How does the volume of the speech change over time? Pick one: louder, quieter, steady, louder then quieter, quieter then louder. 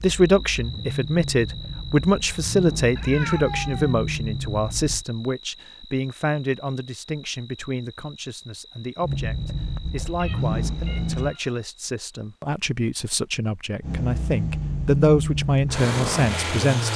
quieter then louder.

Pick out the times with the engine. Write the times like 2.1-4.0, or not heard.
0.0-5.0, 9.0-11.3, 13.8-16.9.